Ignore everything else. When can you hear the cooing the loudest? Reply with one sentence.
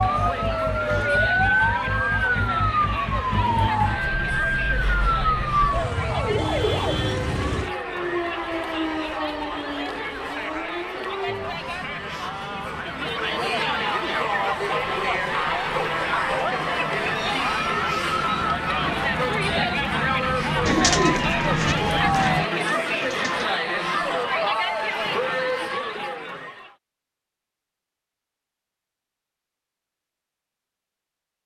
The volume of the cooing peaks at 21 seconds.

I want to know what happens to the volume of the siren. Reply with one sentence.
The loudness of the siren goes down, then up.